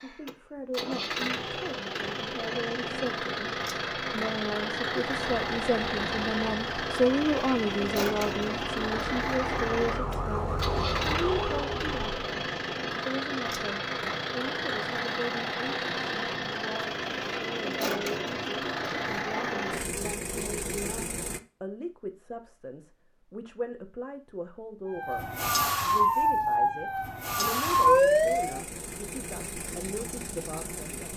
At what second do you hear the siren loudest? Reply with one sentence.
The loudest moment of the siren is at 28 seconds.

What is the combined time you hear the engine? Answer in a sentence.
You can hear the engine for 25 seconds altogether.